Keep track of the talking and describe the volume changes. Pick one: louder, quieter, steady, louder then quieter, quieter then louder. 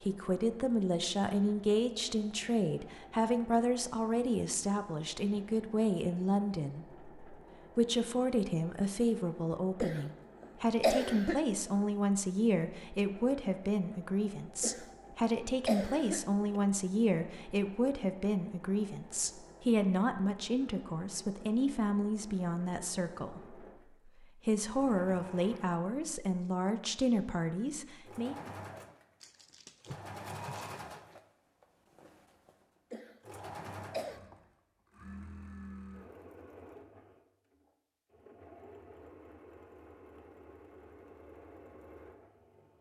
steady.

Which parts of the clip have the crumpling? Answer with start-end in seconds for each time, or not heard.
29.2-30.8.